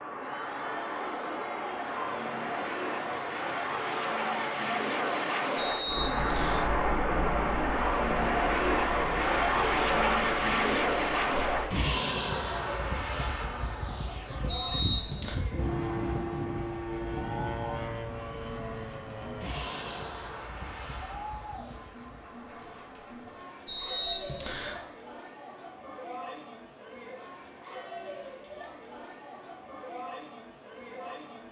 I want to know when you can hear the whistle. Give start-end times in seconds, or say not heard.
5.5-6.7, 14.4-15.4, 23.6-24.8.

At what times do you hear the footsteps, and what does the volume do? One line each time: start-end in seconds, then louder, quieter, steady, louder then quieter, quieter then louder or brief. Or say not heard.
not heard.